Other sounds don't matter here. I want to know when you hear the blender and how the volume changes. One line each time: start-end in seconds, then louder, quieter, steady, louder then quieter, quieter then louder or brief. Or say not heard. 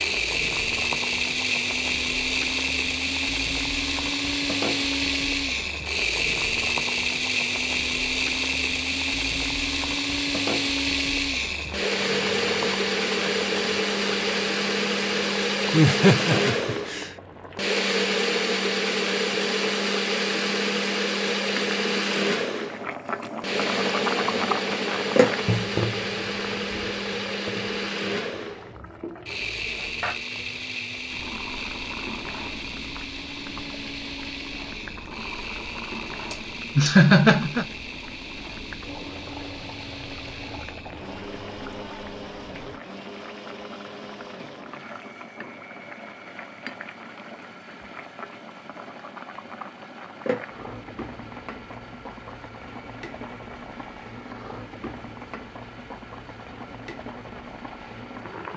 0.0-58.5 quieter.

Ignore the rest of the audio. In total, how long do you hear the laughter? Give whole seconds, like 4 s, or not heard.
3 s.